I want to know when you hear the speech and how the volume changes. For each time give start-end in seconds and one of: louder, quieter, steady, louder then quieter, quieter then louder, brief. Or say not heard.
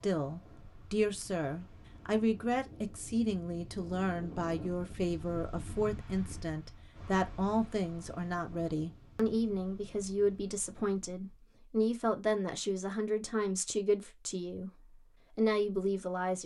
0.0-14.7 steady
15.3-16.4 brief.